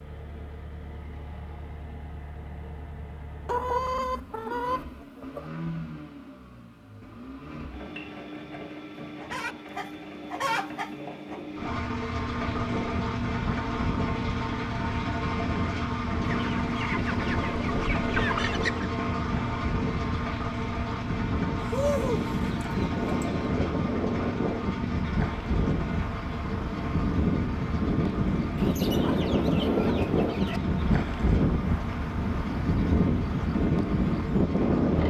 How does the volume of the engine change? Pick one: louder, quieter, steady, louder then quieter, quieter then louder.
louder then quieter.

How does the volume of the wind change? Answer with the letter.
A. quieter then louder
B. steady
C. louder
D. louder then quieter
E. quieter
C.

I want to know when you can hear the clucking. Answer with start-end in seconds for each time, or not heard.
3.5-5.5, 8.9-11.4, 16.2-18.9, 21.6-23.5, 28.6-30.6.